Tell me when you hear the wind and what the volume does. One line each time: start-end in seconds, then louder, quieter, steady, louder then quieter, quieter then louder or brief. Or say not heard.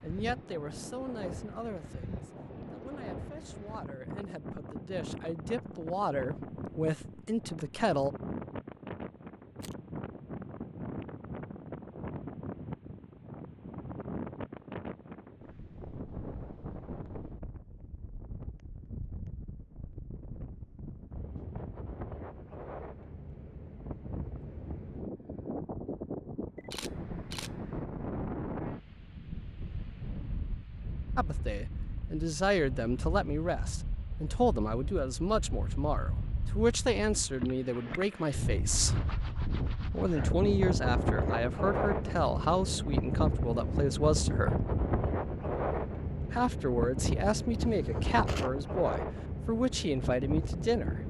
0.0-51.0 louder.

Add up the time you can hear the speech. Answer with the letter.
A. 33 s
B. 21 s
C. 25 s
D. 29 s
C.